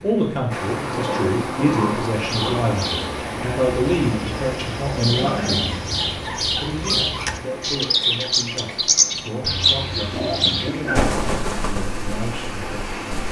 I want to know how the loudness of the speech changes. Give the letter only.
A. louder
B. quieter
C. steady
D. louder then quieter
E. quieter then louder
B.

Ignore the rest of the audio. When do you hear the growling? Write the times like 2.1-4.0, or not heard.
0.9-2.7, 5.0-5.7, 10.1-11.1.